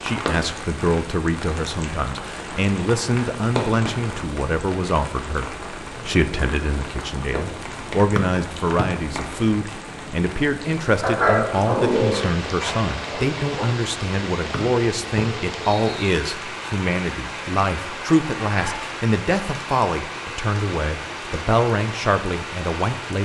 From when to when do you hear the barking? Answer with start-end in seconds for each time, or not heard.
11.0-13.7.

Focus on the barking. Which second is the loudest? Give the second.
11 s.